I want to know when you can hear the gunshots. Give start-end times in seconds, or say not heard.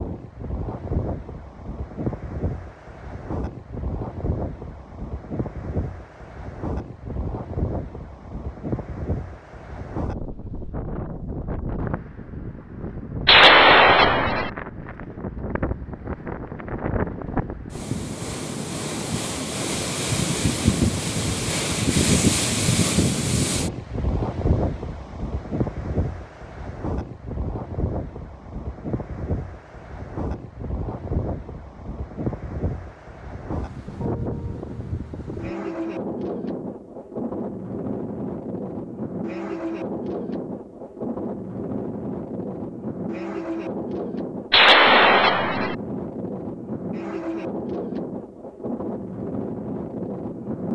13.2-14.5, 44.5-45.8.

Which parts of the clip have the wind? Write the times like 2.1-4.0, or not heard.
0.0-50.7.